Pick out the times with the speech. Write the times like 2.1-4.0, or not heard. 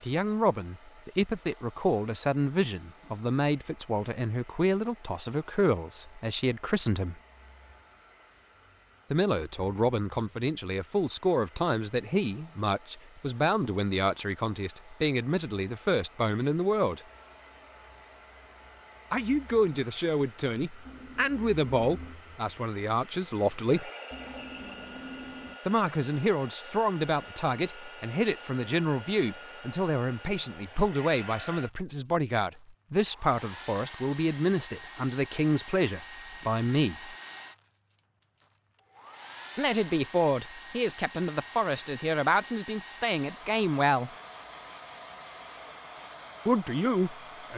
0.0-7.2, 9.1-17.0, 19.1-23.9, 25.6-37.1, 39.5-44.1, 46.5-47.5.